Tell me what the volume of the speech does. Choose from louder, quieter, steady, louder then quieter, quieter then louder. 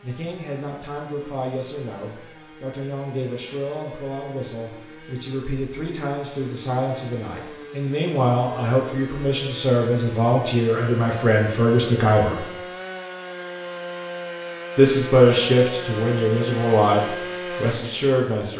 louder.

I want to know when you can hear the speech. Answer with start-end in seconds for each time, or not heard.
0.0-12.4, 14.8-18.5.